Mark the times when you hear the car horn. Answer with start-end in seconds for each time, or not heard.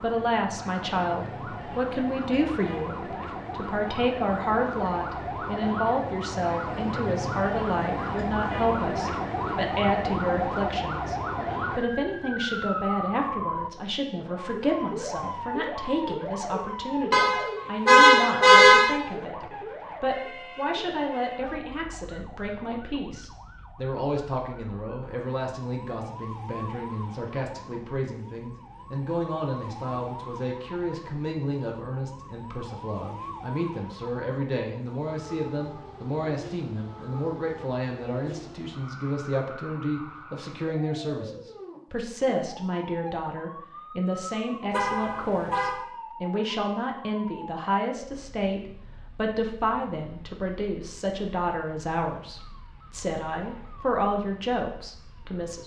17.1-18.9, 44.7-45.8.